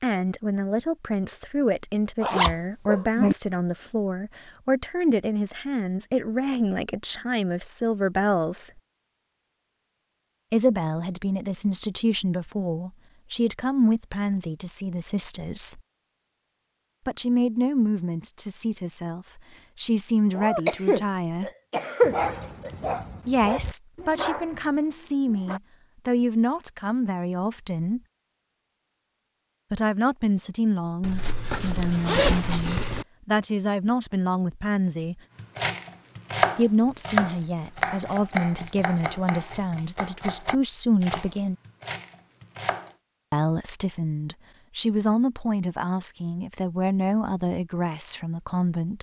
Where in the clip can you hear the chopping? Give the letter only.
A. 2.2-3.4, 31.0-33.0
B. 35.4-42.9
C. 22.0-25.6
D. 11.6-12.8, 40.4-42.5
B.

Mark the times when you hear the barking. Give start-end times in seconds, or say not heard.
22.0-25.6.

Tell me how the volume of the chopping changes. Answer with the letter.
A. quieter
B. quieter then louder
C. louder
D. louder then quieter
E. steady
A.